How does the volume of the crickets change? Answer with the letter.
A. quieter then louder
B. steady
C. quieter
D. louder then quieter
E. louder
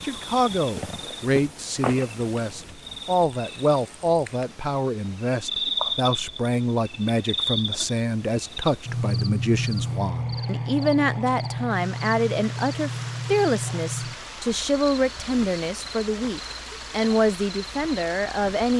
D.